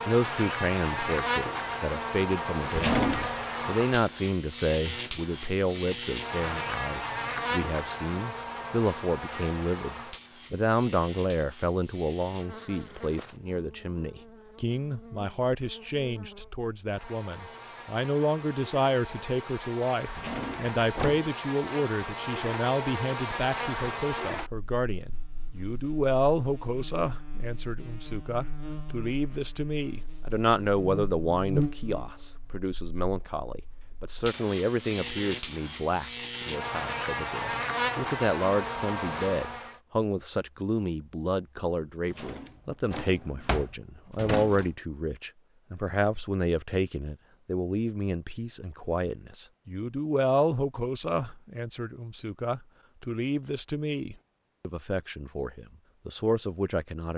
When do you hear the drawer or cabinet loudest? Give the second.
3 s.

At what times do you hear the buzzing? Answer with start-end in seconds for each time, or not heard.
0.0-39.8.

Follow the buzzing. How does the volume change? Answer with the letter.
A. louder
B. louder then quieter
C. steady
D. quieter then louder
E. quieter
D.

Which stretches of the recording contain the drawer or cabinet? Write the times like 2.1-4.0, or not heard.
2.7-3.4, 20.1-21.2, 42.1-44.7.